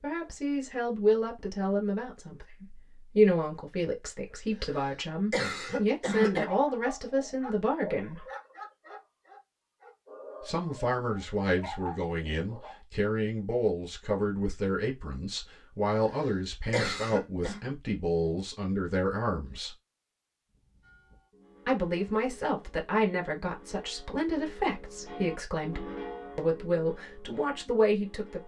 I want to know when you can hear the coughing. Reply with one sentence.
The coughing can be heard from 4.5 to 6.5 s and from 15.9 to 17.6 s.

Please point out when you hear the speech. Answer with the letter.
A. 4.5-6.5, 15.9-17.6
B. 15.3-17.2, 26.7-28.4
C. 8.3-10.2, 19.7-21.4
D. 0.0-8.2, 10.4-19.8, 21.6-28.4
D.